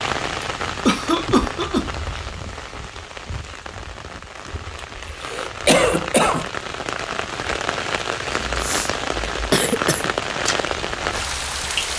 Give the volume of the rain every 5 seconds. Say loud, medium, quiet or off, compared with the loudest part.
medium, loud, loud.